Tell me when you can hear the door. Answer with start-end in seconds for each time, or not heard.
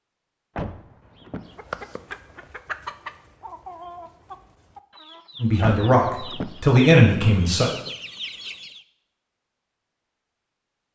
0.6-1.6, 5.6-6.7.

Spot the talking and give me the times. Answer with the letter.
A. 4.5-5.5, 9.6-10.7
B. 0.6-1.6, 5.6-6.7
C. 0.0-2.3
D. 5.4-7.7
D.